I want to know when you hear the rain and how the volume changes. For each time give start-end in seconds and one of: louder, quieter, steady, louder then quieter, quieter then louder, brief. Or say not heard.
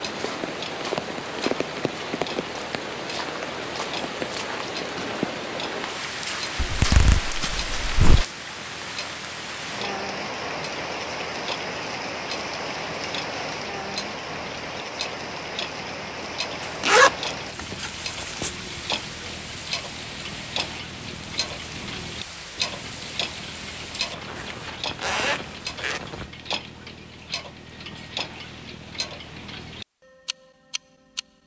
0.0-26.3 quieter.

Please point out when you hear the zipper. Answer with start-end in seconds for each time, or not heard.
6.5-8.2, 16.6-18.5, 24.4-26.0.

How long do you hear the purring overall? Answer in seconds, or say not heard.
not heard.